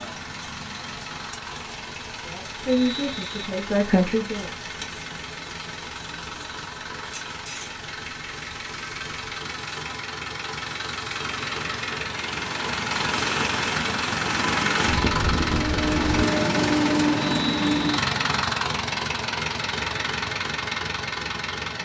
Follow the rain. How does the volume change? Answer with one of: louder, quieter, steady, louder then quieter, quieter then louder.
louder.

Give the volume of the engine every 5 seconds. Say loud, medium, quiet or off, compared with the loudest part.
quiet, quiet, medium, loud, medium.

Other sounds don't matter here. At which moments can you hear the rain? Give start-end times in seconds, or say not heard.
0.0-16.0.